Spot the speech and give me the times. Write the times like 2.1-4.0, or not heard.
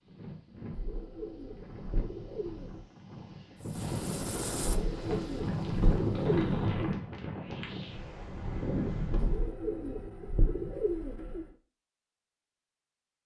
not heard.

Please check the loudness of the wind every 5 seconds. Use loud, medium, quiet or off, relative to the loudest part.
medium, loud, off.